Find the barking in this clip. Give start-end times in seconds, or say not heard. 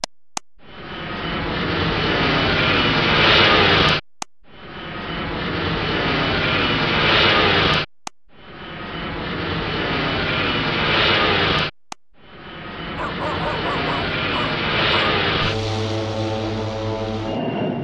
12.9-15.2.